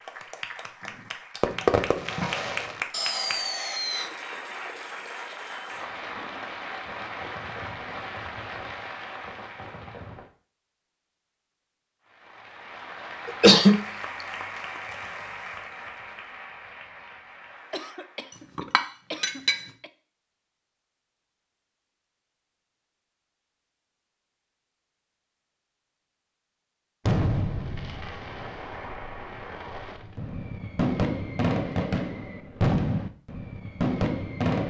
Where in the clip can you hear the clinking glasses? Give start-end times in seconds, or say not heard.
18.3-19.7.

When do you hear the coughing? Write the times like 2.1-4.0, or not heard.
13.2-13.8, 17.7-19.9.